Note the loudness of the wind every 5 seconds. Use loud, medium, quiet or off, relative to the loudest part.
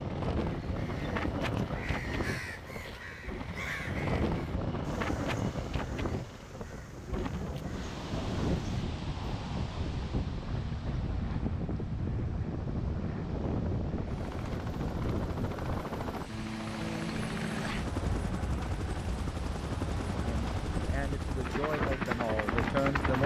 loud, loud, loud, medium, loud.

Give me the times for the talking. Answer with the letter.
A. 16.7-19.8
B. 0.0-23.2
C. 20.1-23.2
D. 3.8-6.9
C.